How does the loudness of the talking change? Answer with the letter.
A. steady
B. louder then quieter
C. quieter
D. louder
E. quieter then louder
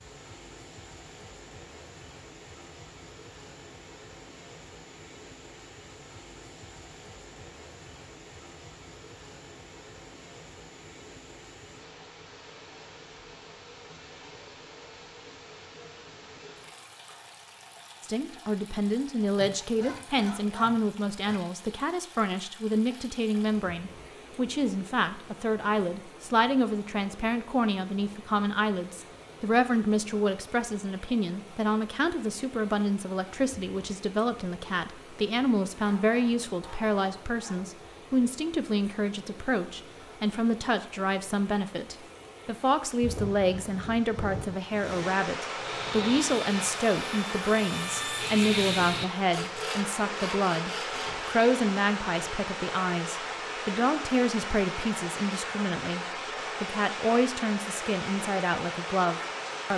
A.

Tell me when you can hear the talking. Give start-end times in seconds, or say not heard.
18.0-59.7.